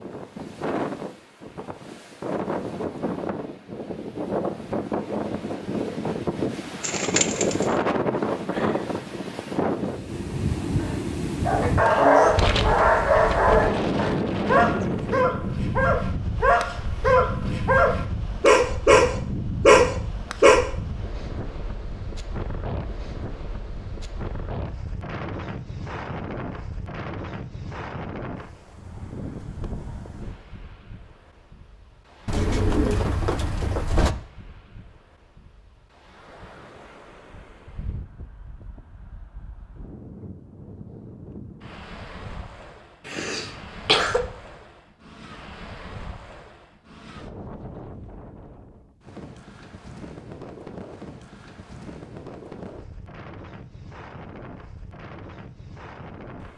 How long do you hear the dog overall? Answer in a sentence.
You can hear the dog for 9 seconds altogether.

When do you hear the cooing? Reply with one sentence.
The cooing can be heard from 6.8 to 7.7 s and from 32.2 to 34.1 s.